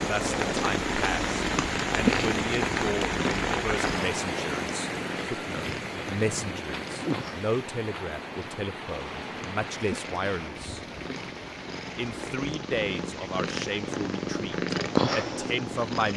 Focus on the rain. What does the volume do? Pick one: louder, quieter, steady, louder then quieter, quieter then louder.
quieter.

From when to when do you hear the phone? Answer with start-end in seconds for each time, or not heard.
not heard.